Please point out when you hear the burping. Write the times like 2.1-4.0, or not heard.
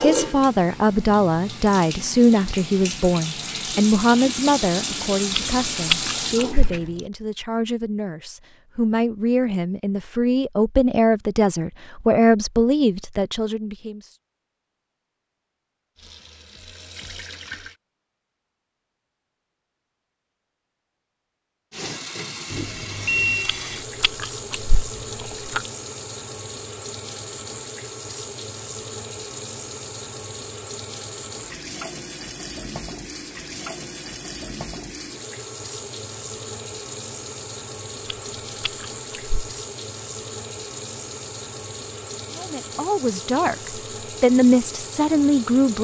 not heard.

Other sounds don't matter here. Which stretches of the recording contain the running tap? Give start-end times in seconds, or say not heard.
0.0-6.9, 15.9-17.8, 21.7-45.8.